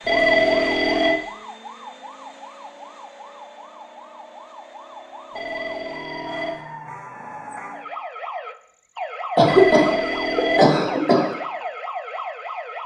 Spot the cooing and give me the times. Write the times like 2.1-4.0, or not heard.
not heard.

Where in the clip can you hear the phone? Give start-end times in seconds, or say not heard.
0.0-1.1, 5.3-6.6, 9.4-10.8.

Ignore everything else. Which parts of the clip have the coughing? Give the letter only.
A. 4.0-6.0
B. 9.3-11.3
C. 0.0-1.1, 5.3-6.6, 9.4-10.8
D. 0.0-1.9
B.